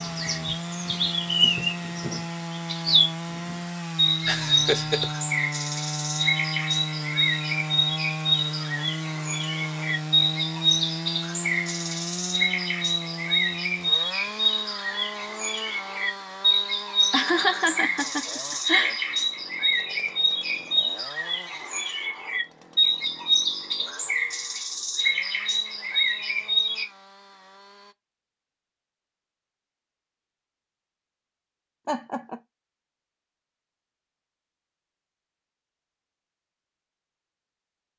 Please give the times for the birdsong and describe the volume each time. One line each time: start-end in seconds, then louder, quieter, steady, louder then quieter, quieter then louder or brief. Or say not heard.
0.0-26.9 steady.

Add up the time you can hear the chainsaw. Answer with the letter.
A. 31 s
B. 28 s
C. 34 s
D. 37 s
B.